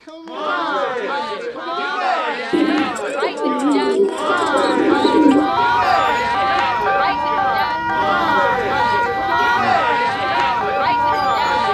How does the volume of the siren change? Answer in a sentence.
The volume of the siren stays about the same.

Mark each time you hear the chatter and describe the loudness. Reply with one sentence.
You can hear the chatter from 0.1 to 11.6 s, at a steady volume.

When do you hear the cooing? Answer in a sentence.
The cooing can be heard from 2.5 to 5.5 s.